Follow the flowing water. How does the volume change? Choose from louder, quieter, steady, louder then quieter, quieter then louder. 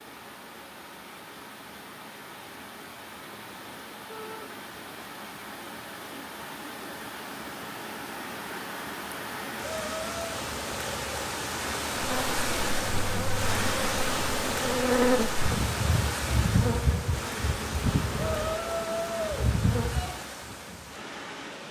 louder then quieter.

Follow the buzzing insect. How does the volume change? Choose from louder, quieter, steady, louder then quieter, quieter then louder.
louder then quieter.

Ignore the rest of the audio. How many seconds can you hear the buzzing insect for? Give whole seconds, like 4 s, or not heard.
8 s.